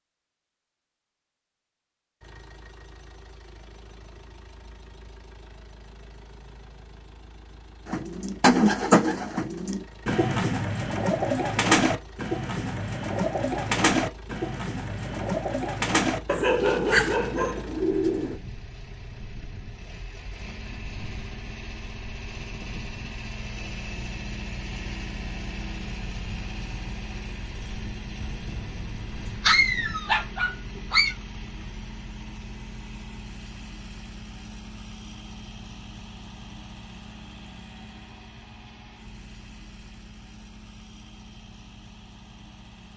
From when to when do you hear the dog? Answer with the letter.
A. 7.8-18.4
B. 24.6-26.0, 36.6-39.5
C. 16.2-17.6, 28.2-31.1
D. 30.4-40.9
C.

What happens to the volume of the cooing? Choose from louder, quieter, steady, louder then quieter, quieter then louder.
quieter.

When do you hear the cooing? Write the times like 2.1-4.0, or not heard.
7.8-18.4.